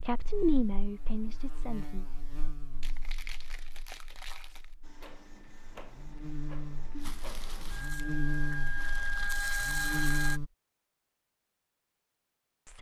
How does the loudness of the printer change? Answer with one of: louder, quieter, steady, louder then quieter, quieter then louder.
louder.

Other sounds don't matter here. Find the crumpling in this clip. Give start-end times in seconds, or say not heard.
2.8-4.8, 6.9-9.3.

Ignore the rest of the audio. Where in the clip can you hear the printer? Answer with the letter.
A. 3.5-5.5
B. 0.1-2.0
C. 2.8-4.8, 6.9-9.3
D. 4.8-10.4
D.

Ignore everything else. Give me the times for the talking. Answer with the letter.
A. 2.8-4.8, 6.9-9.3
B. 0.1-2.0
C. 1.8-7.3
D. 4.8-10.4
B.